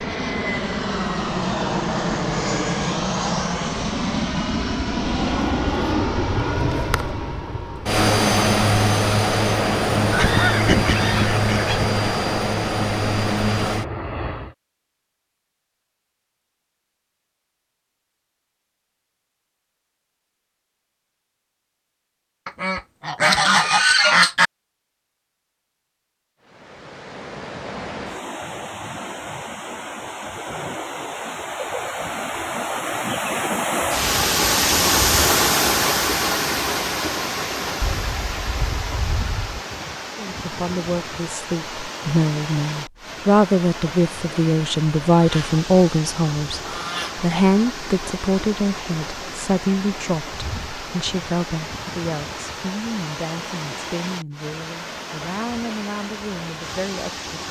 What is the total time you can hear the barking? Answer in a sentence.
The barking can't be heard in this clip.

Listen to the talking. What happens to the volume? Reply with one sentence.
The loudness of the talking goes down.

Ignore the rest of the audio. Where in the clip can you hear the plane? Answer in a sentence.
The plane can be heard from 0.0 to 14.6 s.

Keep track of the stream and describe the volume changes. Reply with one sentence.
The volume of the stream goes up, then down.